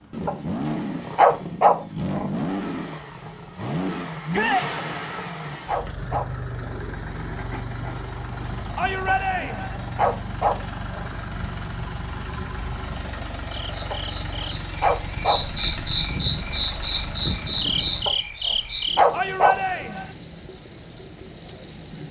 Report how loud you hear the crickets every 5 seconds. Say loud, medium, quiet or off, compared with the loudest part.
off, quiet, quiet, loud, loud.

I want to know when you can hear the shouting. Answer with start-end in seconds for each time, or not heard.
4.3-4.8, 8.8-9.8, 19.1-20.1.